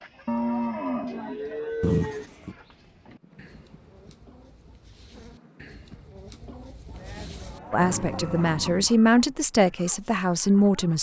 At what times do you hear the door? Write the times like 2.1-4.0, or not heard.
not heard.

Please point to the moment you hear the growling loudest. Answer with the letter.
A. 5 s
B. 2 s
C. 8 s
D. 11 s
B.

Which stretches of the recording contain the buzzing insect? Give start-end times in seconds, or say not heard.
3.1-6.2.